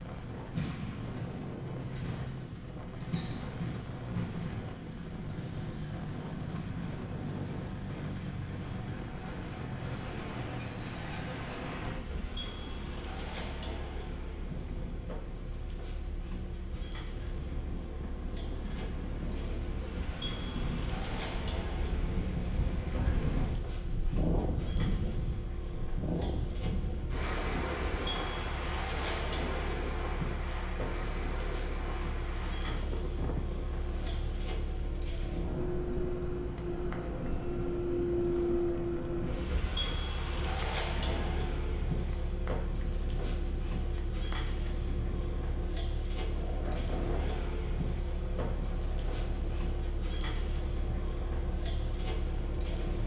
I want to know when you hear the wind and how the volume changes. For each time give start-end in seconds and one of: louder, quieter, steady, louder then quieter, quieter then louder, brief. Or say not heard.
0.0-53.0 louder then quieter.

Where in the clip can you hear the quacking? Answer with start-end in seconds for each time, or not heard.
not heard.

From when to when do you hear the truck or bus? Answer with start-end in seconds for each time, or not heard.
0.0-53.0.